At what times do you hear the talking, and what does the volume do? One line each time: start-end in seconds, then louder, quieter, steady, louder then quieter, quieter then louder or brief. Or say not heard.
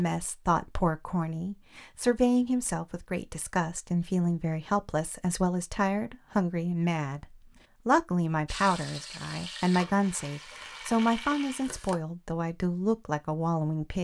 0.0-13.9 steady.